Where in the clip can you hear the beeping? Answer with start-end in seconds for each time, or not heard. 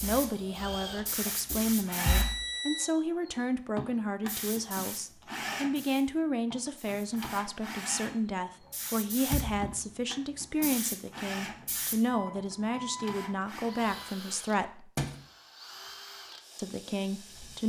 2.0-2.9, 12.1-14.2.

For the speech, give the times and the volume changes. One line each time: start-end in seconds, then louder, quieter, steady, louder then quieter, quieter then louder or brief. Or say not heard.
0.0-14.9 steady
16.6-17.6 brief.